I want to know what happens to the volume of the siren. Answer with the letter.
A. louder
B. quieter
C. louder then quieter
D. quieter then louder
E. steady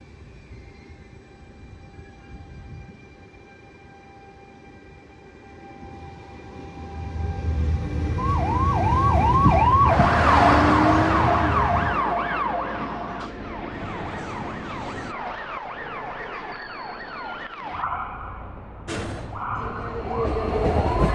B.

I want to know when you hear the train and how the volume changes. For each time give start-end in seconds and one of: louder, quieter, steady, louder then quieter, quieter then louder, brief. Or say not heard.
0.0-15.2 louder then quieter
18.9-21.1 brief.